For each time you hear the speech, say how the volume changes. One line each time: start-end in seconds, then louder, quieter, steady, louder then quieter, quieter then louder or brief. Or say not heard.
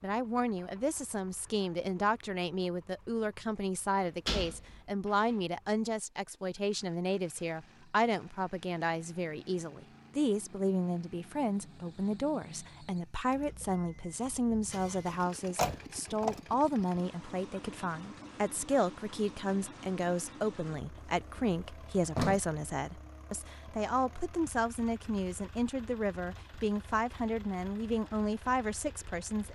0.0-29.5 steady.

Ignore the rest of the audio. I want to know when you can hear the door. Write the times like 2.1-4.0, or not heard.
4.2-5.3, 15.6-16.4, 20.9-22.4.